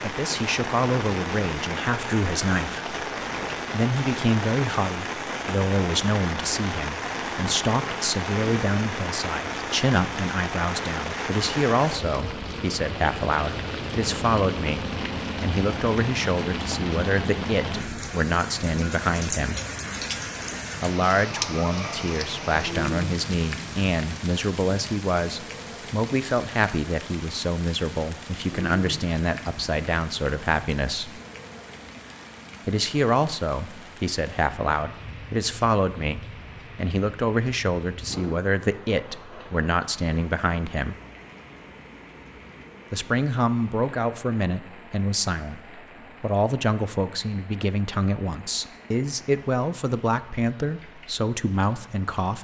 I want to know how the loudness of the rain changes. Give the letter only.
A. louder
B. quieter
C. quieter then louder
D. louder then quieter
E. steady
B.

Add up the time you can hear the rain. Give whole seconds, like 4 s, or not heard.
52 s.